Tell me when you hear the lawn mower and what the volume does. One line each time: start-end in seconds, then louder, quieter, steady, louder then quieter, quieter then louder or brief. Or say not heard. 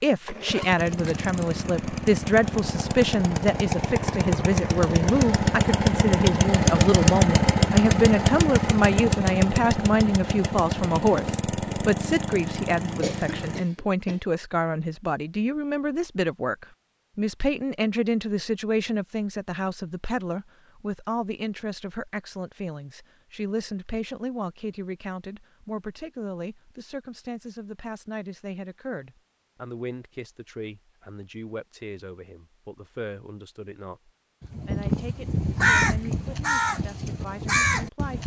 0.2-13.6 louder then quieter.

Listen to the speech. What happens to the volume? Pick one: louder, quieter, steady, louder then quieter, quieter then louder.
quieter.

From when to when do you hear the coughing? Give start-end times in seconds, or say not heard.
13.0-14.2.